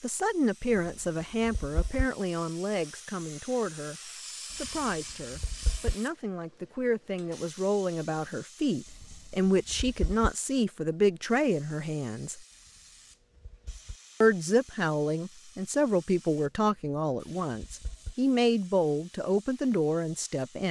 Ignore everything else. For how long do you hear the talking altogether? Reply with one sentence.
You can hear the talking for 19 seconds altogether.